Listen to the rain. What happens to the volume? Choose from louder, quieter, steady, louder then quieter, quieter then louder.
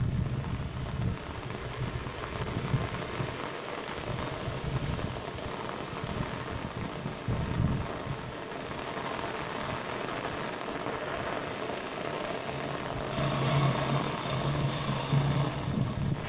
steady.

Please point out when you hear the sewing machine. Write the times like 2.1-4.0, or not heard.
12.5-16.1.